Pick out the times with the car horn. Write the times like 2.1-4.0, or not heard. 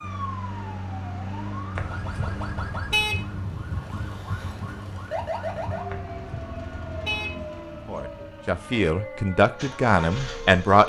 1.8-3.2, 5.8-7.3.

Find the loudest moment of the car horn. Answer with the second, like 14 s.
3 s.